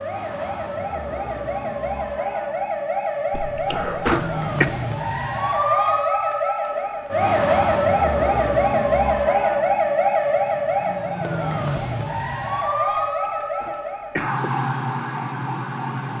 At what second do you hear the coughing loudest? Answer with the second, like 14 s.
4 s.